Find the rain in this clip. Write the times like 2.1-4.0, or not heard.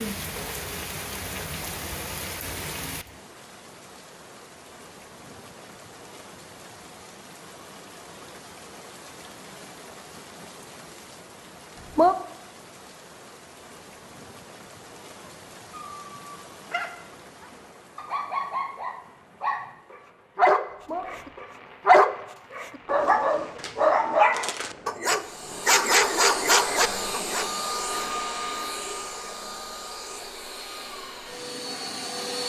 0.0-25.8.